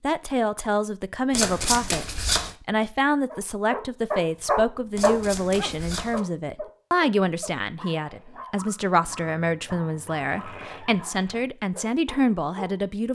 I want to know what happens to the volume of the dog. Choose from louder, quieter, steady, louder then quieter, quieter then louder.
quieter.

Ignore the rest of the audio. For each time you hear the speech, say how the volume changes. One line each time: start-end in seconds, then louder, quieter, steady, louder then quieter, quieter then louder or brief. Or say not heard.
0.0-13.1 steady.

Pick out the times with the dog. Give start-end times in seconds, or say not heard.
3.2-12.8.